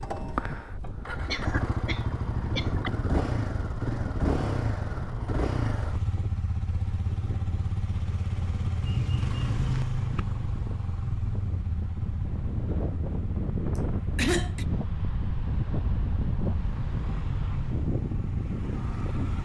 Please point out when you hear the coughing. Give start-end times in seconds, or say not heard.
0.8-2.9, 8.8-10.2, 13.8-14.7.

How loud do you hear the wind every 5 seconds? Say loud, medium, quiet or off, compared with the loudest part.
medium, medium, loud, loud.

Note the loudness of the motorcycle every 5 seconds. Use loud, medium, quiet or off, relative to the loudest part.
loud, loud, medium, medium.